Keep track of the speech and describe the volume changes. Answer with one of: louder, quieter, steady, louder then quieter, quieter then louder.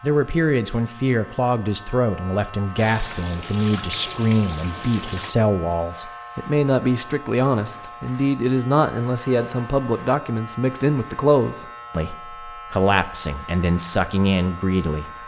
steady.